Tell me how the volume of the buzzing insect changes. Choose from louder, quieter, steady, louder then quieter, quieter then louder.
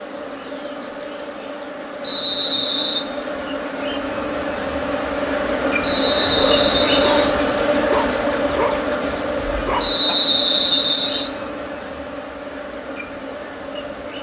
louder then quieter.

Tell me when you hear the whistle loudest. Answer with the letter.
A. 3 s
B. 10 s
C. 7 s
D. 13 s
B.